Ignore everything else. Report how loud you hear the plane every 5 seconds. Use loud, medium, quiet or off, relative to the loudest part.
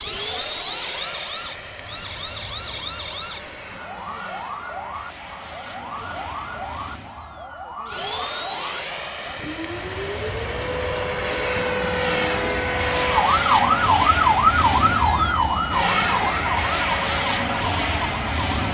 medium, medium, loud, loud.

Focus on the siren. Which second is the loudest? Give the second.
14 s.